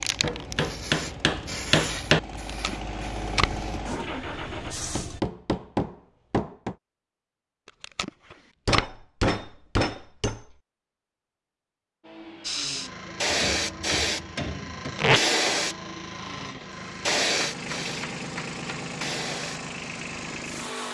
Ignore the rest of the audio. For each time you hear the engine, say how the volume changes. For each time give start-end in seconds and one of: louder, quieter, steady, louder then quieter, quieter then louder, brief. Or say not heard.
0.0-4.8 louder
12.0-20.8 louder.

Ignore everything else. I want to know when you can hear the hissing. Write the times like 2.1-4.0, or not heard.
0.0-5.2, 12.4-20.8.